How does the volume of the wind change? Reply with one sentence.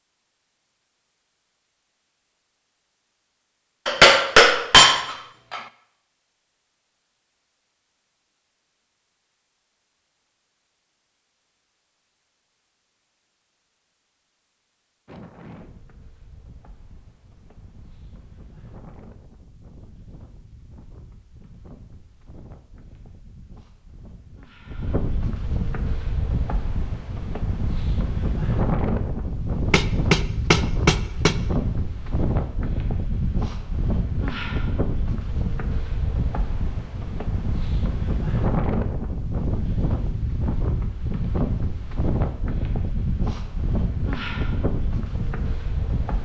The loudness of the wind goes up.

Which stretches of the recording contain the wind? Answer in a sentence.
The wind can be heard from 15.1 to 46.2 s.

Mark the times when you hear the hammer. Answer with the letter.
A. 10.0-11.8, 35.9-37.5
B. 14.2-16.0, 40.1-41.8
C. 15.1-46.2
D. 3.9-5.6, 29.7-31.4
D.